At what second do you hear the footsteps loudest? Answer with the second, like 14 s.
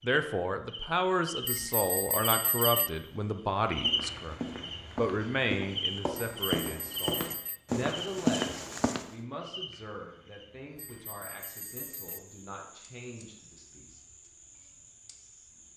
8 s.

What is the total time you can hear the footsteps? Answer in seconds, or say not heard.
5 s.